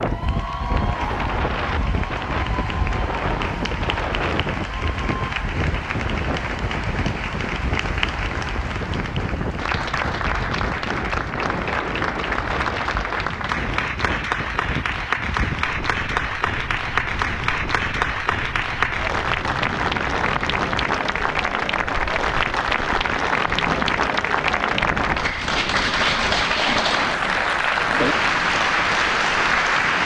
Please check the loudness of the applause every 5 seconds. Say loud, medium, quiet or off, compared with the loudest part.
medium, medium, medium, loud, loud, loud.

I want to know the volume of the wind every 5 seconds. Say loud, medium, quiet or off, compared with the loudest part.
loud, loud, loud, medium, medium, medium.